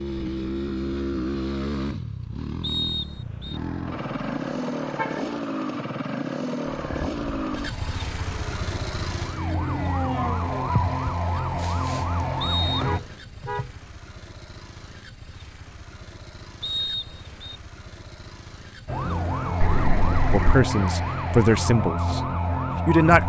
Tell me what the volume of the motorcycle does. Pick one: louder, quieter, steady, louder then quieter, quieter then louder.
quieter.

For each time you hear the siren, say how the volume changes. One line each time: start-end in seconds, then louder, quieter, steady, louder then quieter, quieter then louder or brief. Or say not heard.
6.8-13.0 louder
18.9-23.2 steady.